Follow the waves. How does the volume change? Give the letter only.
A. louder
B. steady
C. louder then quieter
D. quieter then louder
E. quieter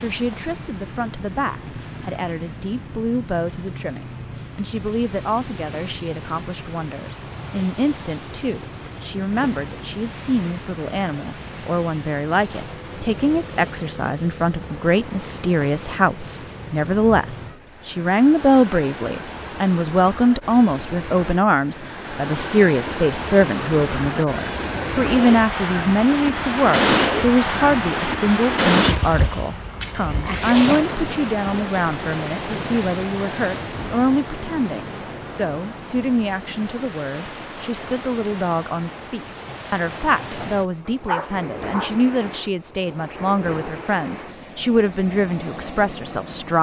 C.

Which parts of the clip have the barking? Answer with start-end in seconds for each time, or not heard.
40.4-42.0.